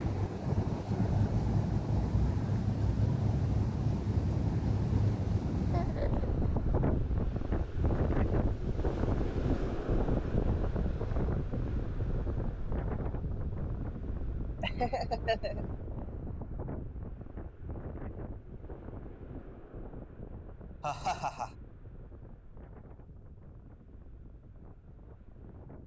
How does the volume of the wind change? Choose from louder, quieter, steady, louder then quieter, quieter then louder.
quieter.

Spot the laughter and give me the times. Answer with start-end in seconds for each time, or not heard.
5.7-6.3, 14.6-15.7, 20.8-21.5.